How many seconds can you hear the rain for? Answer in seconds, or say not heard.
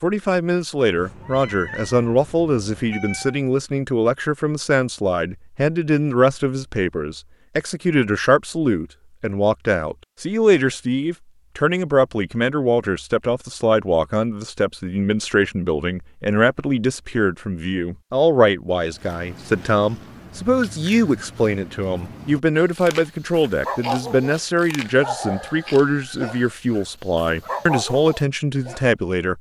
not heard.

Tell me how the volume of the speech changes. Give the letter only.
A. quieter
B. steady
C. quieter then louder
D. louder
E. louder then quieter
B.